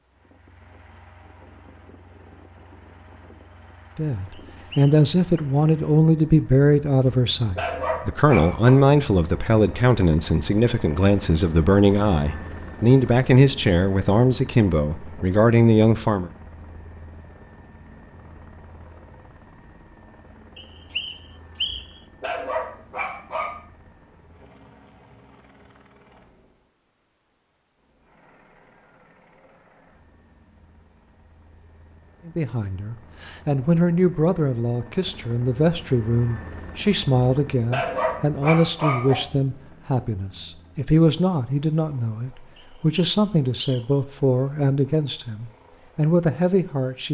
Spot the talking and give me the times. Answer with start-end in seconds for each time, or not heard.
4.0-16.3, 32.2-47.0.